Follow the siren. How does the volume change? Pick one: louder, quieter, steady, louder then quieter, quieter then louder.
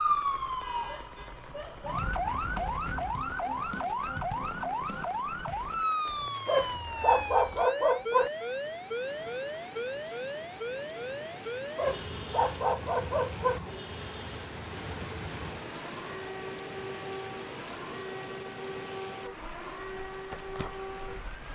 quieter.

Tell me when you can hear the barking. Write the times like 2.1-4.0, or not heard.
6.5-8.3, 11.8-13.6.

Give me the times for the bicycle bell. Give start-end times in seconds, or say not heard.
not heard.